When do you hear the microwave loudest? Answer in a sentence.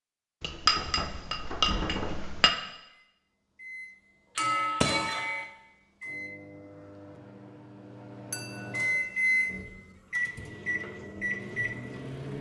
The volume of the microwave peaks at 9 seconds.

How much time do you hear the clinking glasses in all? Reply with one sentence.
You can hear the clinking glasses for 4 seconds altogether.